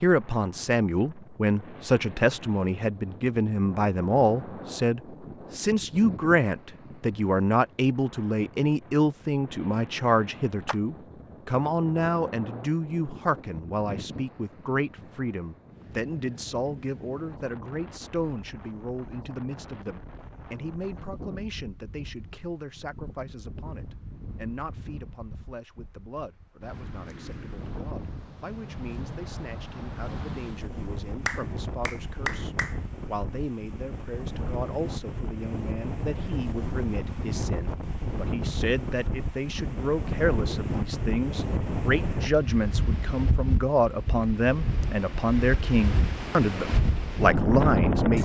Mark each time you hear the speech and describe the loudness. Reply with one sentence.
The speech can be heard from 0.0 to 48.2 s, getting quieter then louder.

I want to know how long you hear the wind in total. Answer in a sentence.
You can hear the wind for 48 seconds altogether.